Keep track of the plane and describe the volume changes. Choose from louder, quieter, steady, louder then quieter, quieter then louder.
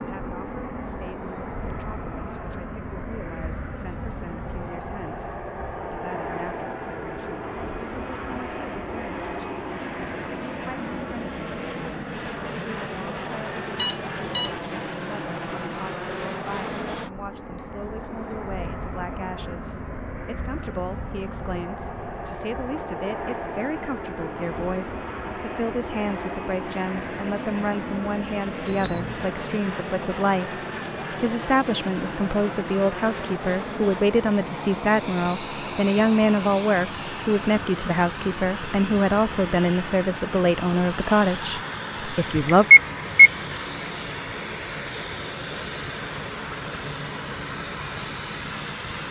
steady.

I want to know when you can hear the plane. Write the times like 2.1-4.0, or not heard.
0.0-49.0.